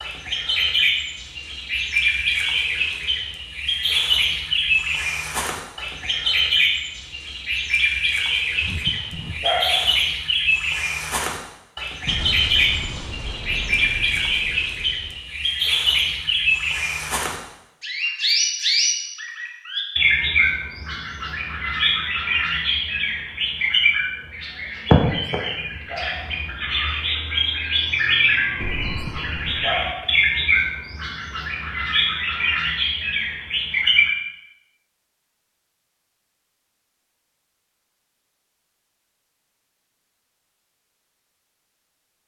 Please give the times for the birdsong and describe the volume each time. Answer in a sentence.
You can hear the birdsong from 0.0 to 34.1 s, at a steady volume.